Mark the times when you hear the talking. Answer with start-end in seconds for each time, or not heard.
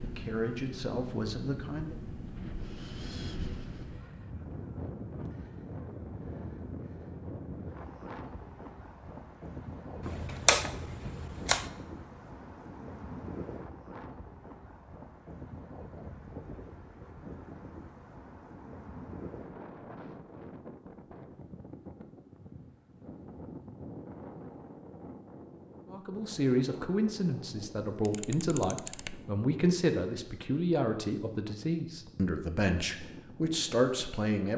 0.0-1.9, 25.9-34.5.